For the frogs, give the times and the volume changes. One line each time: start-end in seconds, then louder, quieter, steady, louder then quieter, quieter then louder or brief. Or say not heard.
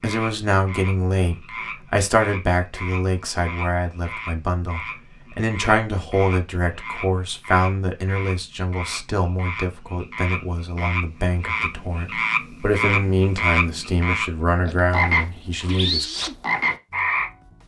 0.0-17.3 louder.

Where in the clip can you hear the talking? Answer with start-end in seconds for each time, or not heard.
0.0-16.1.